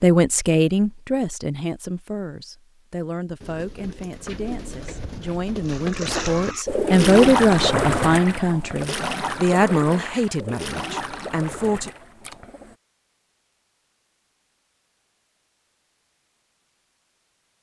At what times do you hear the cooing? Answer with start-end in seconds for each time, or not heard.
3.4-12.8.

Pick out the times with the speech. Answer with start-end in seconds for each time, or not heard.
0.0-11.9.